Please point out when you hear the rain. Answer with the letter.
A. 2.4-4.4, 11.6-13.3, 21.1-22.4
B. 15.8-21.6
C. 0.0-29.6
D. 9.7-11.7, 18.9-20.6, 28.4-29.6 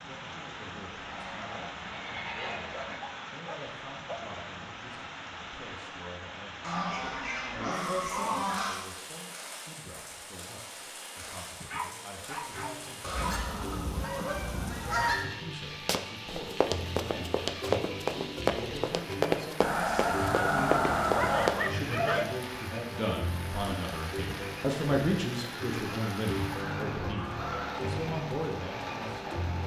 C.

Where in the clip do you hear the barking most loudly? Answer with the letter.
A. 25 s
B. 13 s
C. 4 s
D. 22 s
D.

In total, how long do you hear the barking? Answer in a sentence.
You can hear the barking for 5 seconds altogether.